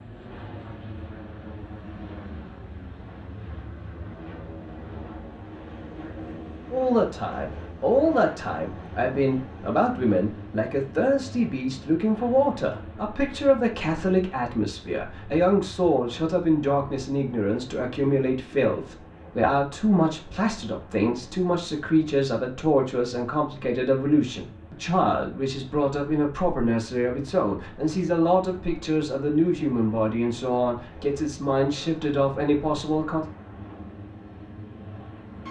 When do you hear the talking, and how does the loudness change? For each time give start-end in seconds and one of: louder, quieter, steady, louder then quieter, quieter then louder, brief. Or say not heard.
6.7-33.2 steady.